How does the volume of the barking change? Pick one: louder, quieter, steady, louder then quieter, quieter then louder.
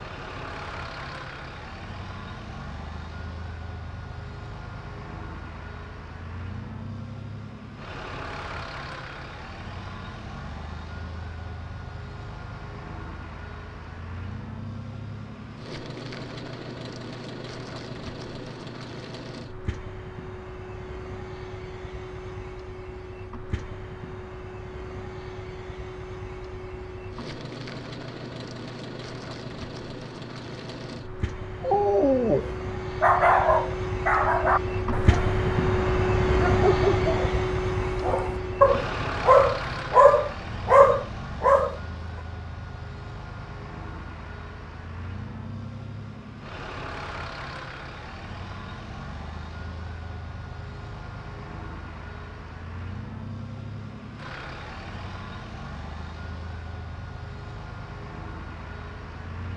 quieter then louder.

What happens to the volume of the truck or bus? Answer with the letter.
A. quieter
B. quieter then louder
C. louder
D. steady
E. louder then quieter
E.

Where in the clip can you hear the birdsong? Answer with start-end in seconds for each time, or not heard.
not heard.